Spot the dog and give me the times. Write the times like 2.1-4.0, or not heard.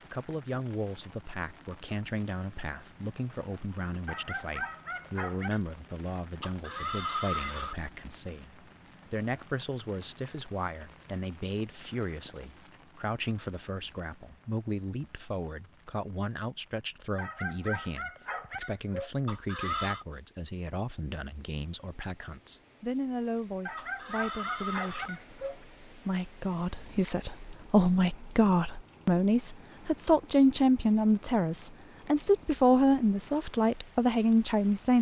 4.0-5.6, 17.1-19.1, 23.6-25.6.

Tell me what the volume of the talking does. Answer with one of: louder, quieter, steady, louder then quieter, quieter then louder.
louder.